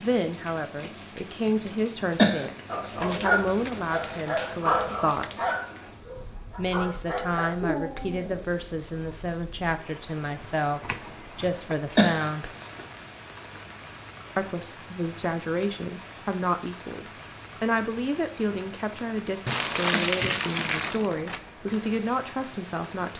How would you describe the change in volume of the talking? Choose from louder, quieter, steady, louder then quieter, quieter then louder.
steady.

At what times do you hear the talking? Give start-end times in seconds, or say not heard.
0.0-5.5, 6.5-12.5, 14.3-23.1.